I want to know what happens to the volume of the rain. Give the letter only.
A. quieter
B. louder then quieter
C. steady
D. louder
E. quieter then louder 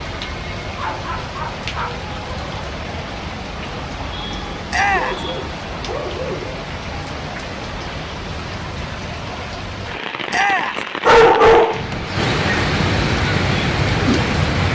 D.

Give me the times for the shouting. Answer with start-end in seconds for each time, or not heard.
4.7-5.2, 10.3-10.8.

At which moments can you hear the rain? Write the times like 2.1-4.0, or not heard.
0.0-14.6.